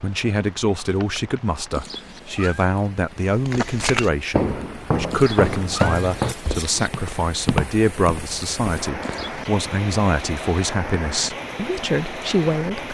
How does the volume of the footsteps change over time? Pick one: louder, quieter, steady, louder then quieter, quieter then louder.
quieter then louder.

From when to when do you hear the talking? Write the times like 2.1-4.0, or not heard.
0.0-12.8.